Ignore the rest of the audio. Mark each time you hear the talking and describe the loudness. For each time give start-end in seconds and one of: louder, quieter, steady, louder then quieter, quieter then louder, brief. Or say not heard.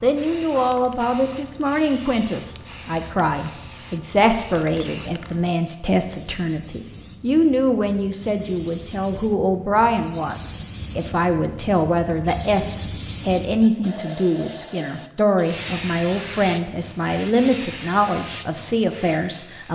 0.0-19.7 steady.